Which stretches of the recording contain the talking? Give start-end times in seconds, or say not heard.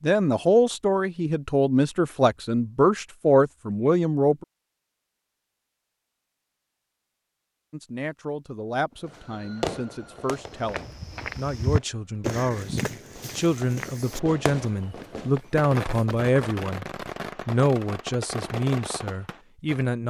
0.0-4.5, 7.7-16.9, 17.4-20.0.